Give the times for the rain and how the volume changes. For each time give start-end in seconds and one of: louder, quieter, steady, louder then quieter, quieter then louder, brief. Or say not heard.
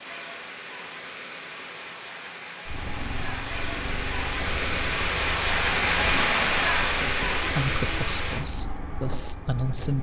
0.0-8.4 louder.